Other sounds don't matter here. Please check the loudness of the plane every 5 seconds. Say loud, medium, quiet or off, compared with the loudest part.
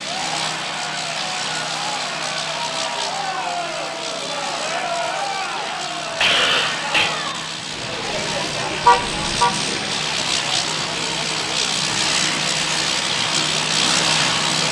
medium, medium, loud.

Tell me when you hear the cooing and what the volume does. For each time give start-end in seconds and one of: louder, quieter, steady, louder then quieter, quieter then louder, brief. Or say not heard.
not heard.